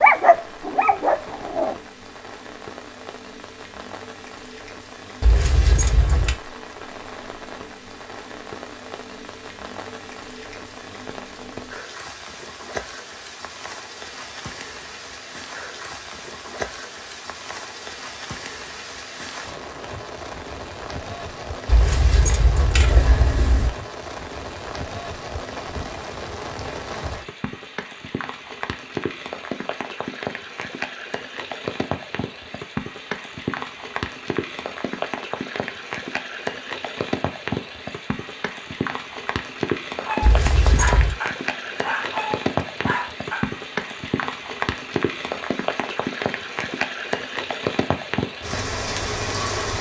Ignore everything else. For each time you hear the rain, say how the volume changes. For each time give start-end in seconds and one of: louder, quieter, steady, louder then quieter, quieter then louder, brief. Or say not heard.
0.0-49.7 louder.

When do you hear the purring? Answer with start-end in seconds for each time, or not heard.
not heard.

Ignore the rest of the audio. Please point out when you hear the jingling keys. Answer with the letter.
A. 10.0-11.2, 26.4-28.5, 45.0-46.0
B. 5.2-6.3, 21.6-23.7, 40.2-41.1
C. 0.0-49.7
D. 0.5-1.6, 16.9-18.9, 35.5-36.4
B.